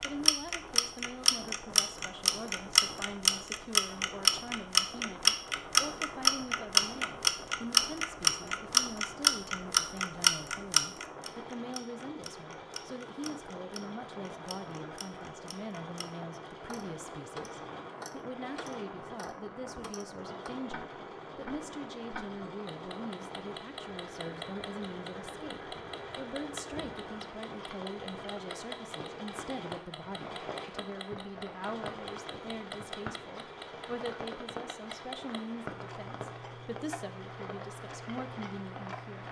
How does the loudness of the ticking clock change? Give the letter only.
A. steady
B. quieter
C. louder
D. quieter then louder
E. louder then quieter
B.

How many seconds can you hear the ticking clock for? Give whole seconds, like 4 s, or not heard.
39 s.